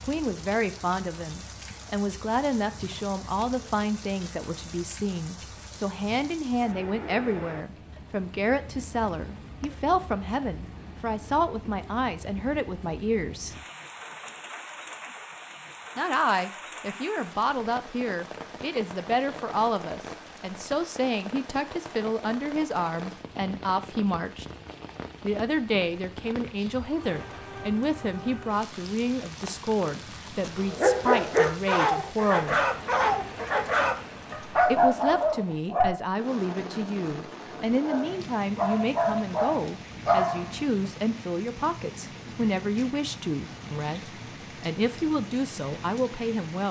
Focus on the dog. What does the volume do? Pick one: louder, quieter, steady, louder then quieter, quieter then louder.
quieter then louder.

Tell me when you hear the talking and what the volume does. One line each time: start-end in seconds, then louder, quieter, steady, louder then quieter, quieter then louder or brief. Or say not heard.
0.1-13.6 steady
15.9-24.4 steady
25.2-32.6 steady
34.6-46.6 steady.